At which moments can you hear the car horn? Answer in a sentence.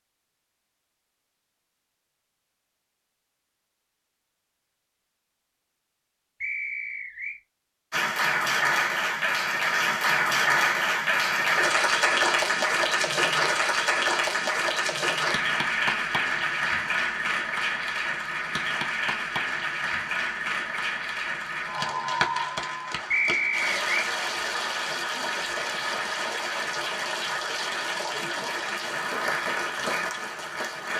The car horn can't be heard in this clip.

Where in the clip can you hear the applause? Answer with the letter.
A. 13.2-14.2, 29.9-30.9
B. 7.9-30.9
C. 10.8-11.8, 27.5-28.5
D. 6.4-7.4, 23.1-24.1
B.